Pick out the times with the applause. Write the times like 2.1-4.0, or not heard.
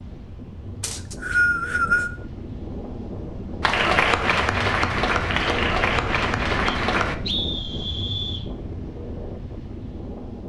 3.6-7.2.